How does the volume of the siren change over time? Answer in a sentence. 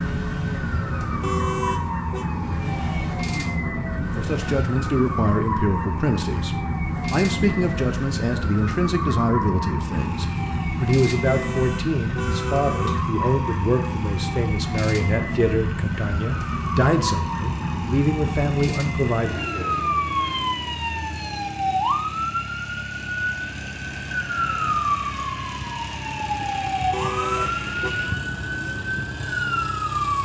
The loudness of the siren stays about the same.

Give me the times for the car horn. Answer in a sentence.
The car horn can be heard from 1.2 to 2.2 s, from 11.2 to 13.1 s and from 26.9 to 27.9 s.